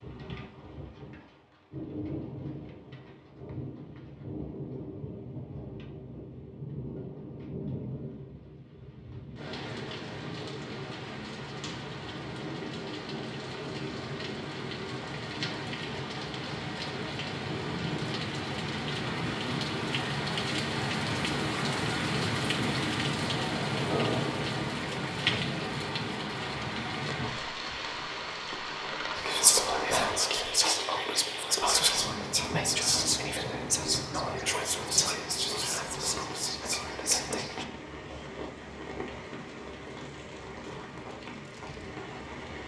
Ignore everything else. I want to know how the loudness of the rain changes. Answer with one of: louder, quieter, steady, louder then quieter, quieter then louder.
louder then quieter.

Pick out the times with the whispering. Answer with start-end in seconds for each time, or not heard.
29.1-37.6.